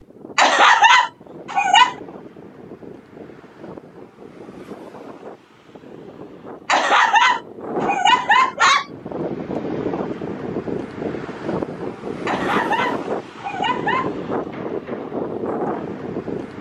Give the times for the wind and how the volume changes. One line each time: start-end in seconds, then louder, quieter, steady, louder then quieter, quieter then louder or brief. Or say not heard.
0.0-16.5 louder.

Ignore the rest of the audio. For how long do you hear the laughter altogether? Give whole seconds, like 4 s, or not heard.
6 s.